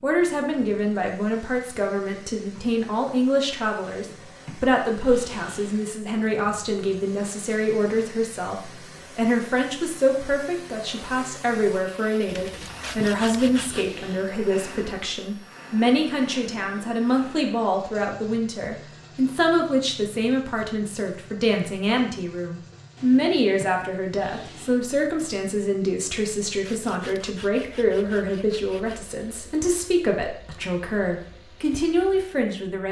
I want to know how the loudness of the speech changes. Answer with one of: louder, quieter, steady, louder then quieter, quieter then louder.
steady.